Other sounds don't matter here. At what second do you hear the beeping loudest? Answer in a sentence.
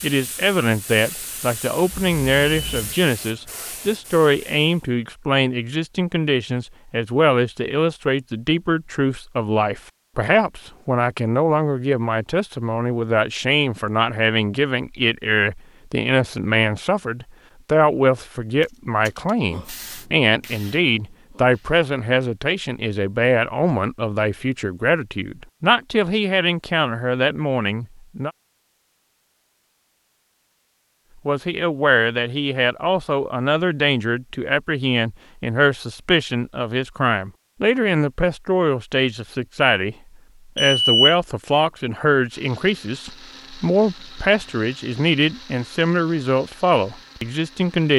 The loudest moment of the beeping is at 41 seconds.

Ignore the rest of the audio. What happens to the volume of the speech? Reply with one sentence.
The loudness of the speech stays about the same.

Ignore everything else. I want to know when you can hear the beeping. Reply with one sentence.
The beeping can be heard from 1.9 to 3.0 s, from 18.6 to 19.3 s and from 40.5 to 41.1 s.